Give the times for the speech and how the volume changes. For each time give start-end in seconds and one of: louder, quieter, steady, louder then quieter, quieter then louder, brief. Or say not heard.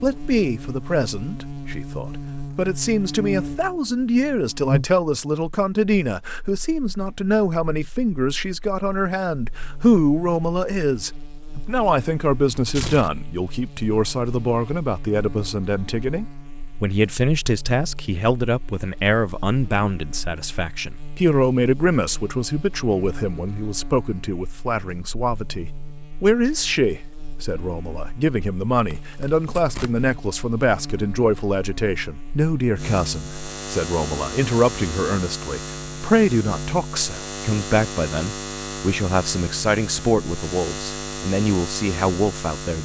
0.0-42.8 steady.